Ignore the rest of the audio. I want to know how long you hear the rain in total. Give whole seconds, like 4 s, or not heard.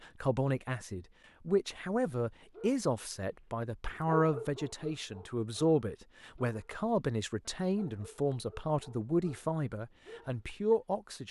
not heard.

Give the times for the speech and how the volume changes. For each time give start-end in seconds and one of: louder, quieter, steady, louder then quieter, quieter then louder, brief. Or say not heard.
0.0-11.2 steady.